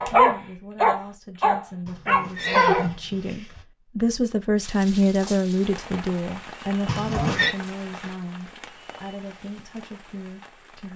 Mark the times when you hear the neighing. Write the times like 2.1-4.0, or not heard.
1.9-3.6, 6.8-7.5.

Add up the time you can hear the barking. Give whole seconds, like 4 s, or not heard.
3 s.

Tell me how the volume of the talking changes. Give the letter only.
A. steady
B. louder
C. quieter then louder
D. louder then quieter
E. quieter
D.